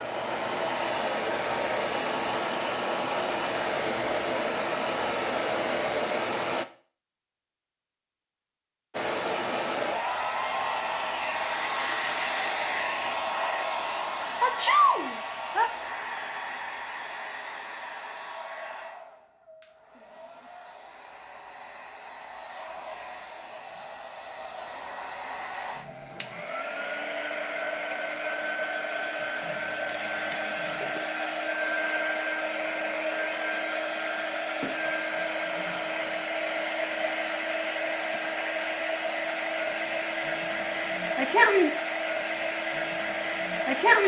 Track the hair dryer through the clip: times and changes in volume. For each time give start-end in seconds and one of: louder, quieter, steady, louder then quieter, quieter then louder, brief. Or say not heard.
0.0-6.7 steady
8.9-44.0 quieter then louder.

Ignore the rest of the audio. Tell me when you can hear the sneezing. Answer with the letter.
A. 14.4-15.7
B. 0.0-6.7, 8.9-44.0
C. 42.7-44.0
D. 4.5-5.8
A.